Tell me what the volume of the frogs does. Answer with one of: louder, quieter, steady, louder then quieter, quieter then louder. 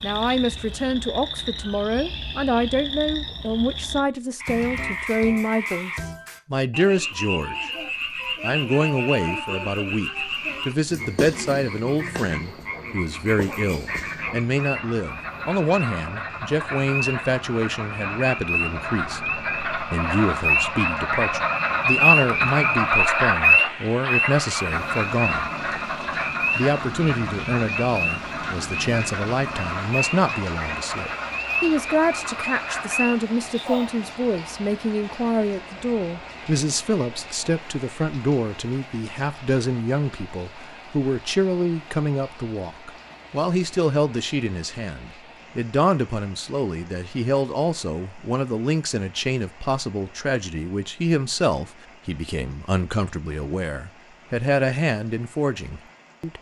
louder then quieter.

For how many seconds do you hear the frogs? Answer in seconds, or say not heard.
34 s.